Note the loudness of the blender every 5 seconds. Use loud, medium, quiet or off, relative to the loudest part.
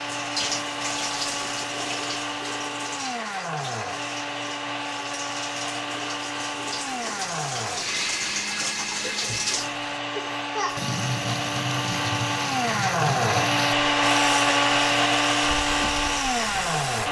medium, medium, loud, loud.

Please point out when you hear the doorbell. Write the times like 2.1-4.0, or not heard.
not heard.